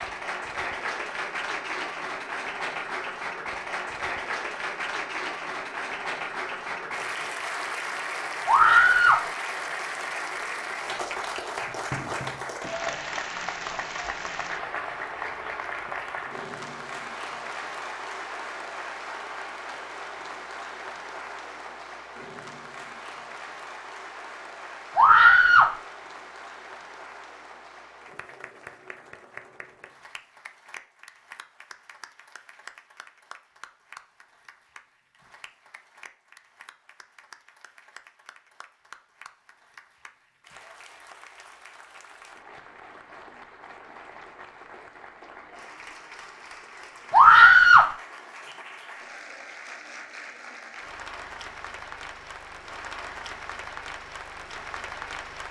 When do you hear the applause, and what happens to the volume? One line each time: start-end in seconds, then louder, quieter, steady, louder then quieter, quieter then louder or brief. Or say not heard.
0.0-55.4 quieter then louder.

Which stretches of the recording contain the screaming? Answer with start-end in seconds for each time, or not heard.
8.4-9.2, 24.9-25.8, 47.1-47.9.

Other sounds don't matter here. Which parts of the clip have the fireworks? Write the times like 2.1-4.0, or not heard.
not heard.